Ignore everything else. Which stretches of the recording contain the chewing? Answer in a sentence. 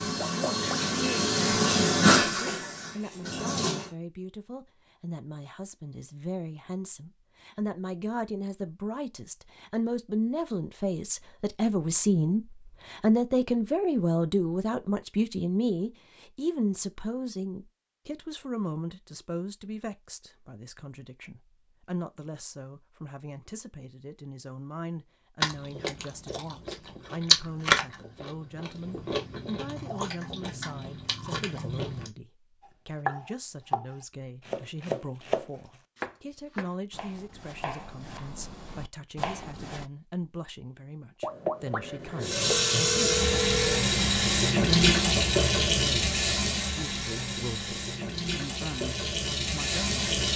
You can hear the chewing from 25.4 to 32.1 s.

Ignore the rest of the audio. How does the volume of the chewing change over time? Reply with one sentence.
The volume of the chewing goes up, then down.